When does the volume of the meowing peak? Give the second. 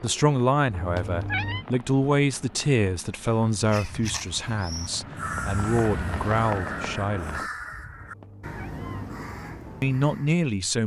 1 s.